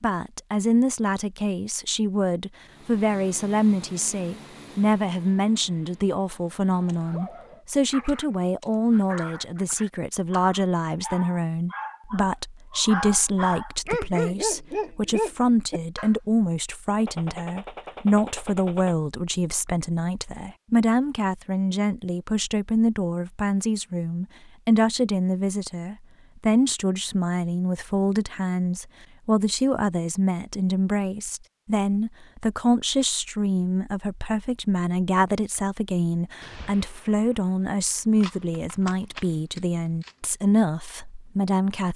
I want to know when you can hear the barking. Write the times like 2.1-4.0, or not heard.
6.9-16.1.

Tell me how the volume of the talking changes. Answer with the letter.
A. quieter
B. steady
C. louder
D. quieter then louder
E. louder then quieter
B.